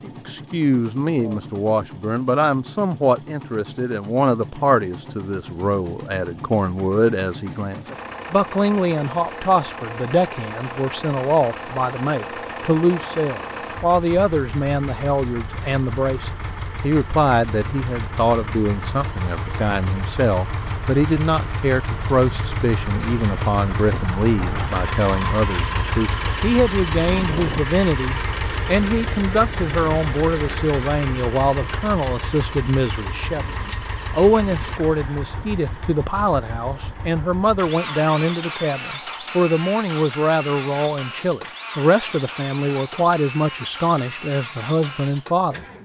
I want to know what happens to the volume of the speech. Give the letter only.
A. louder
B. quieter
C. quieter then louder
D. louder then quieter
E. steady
E.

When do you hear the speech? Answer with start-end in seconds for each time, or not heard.
0.0-45.6.